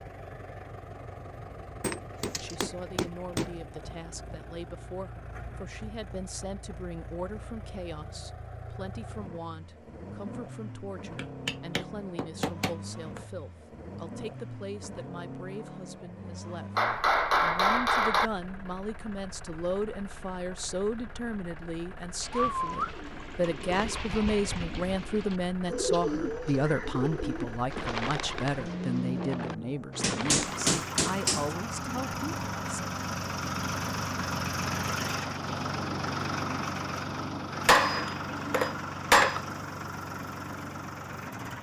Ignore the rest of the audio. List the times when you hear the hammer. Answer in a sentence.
You can hear the hammer from 1.8 to 3.5 s, from 11.2 to 13.2 s, from 16.8 to 18.3 s, from 30.0 to 31.6 s and from 37.6 to 39.5 s.